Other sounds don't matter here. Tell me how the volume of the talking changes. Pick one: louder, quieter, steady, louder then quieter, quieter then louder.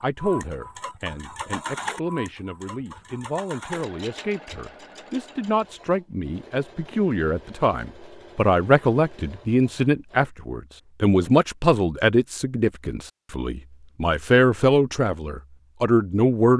louder.